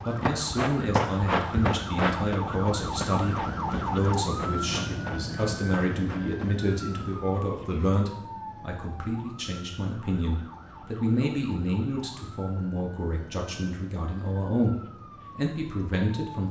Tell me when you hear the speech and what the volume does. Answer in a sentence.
You can hear the speech from 0.0 to 16.4 s, at a steady volume.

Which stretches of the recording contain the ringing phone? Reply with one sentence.
The ringing phone can't be heard in this clip.